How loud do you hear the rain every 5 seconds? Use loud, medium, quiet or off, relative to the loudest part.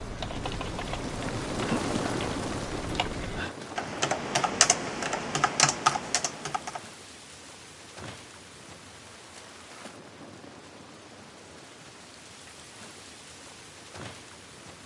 loud, quiet, quiet.